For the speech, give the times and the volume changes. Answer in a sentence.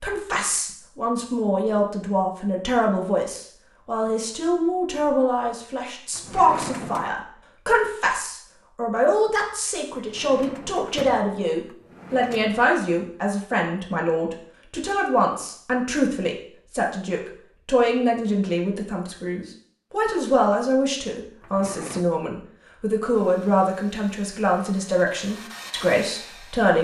The speech can be heard from 0.0 to 26.7 s, at a steady volume.